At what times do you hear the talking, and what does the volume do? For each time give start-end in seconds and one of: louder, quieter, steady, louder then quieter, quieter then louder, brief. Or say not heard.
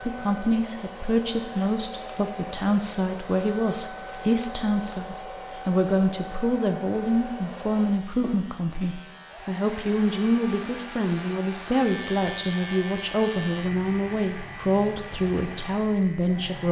0.0-16.6 steady.